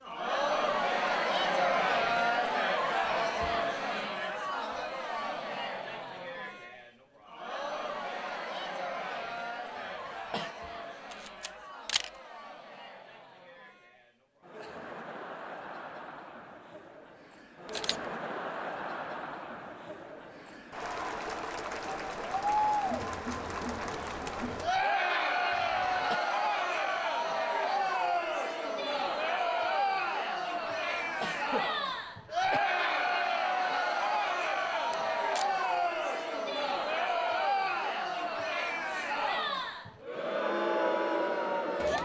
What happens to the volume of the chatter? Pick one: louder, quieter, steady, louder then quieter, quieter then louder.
quieter then louder.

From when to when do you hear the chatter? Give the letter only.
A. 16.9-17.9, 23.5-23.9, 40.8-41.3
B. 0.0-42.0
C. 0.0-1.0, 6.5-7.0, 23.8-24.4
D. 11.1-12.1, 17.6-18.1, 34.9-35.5
B.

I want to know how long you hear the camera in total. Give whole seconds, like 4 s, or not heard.
2 s.